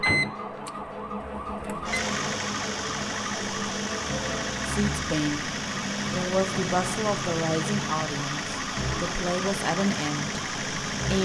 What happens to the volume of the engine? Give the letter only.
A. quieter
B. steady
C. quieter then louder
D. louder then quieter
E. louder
B.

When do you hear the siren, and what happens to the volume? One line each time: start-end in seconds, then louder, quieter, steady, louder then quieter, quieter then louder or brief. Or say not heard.
0.0-11.2 steady.